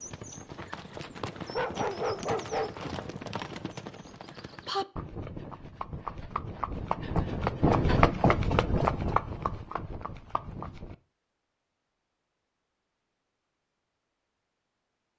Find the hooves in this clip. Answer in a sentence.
The hooves can be heard from 0.0 to 10.9 s.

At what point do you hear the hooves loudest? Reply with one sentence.
The volume of the hooves peaks at 8 seconds.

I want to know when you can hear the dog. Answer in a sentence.
You can hear the dog from 1.5 to 3.1 s.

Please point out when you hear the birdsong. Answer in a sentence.
You can't hear the birdsong here.